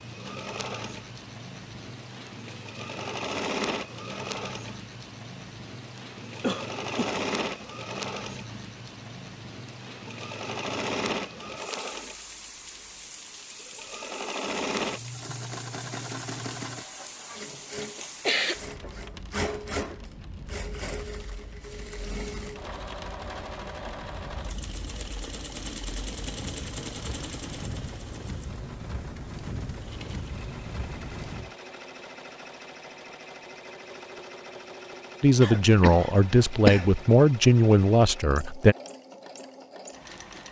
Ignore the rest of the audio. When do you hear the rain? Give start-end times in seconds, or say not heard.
0.0-31.6.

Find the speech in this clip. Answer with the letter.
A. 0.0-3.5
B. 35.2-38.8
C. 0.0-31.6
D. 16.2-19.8
B.